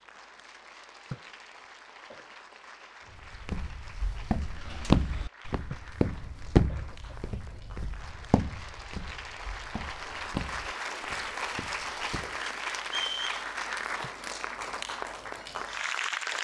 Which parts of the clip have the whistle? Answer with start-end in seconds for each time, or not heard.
12.8-13.4.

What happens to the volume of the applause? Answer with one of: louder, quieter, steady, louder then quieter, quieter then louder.
louder.